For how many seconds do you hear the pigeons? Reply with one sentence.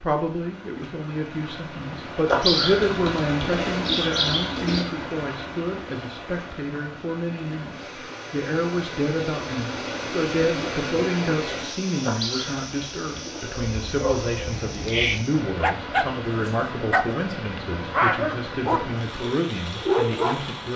You can hear the pigeons for 4 seconds altogether.